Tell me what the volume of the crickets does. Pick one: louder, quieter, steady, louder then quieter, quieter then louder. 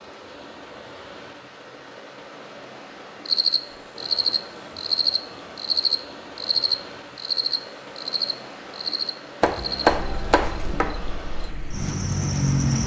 quieter.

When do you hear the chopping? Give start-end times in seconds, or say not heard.
9.4-10.9.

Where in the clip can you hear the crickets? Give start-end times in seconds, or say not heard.
3.2-12.8.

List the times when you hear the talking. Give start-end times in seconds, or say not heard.
not heard.